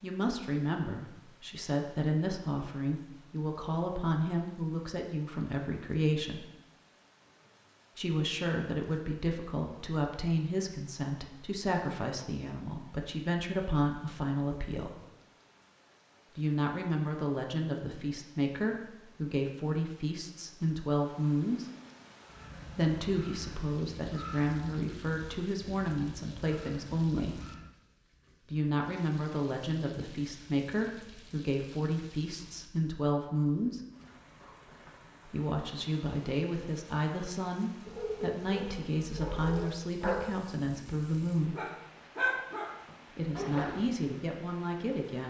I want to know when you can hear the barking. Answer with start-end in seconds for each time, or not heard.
37.9-43.9.